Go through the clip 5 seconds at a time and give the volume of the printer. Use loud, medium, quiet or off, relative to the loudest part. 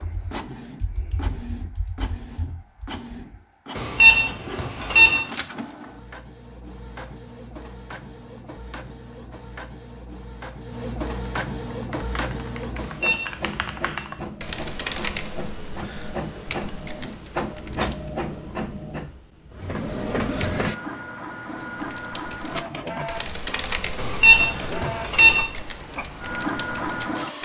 medium, medium, loud, loud, loud, loud.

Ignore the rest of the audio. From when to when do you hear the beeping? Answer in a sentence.
You can hear the beeping from 3.8 to 5.2 s, from 12.8 to 13.8 s and from 23.9 to 25.4 s.